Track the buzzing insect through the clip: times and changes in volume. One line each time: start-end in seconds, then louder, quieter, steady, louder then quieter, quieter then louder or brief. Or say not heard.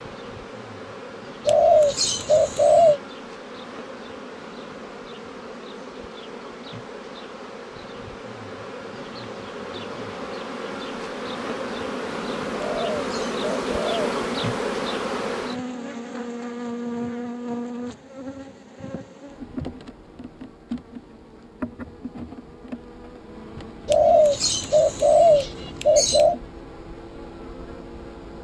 0.0-28.3 louder then quieter.